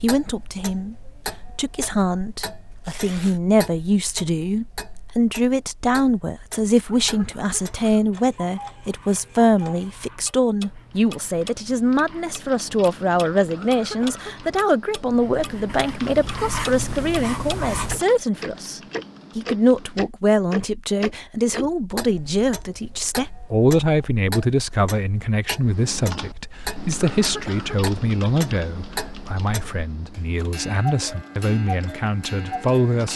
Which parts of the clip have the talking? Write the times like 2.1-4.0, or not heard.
0.0-33.1.